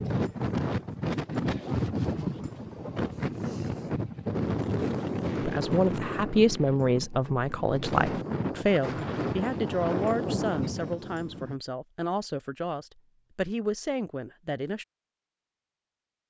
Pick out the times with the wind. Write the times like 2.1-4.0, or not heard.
0.0-11.6.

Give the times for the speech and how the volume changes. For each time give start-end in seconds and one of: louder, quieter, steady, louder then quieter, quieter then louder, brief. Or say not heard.
5.3-14.8 quieter.